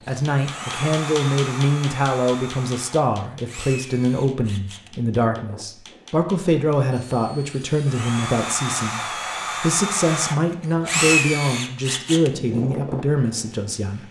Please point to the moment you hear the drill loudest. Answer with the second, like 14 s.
11 s.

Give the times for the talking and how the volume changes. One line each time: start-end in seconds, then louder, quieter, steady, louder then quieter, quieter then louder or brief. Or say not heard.
0.1-14.0 steady.